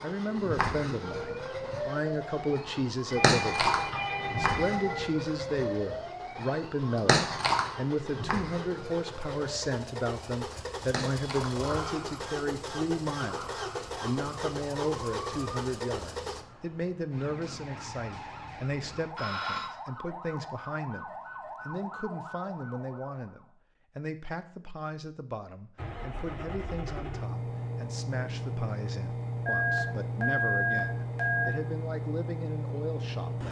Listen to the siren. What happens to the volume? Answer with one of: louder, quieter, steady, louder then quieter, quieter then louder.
quieter.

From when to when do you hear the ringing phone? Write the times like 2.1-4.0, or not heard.
3.0-5.0, 19.1-19.7, 29.4-31.4.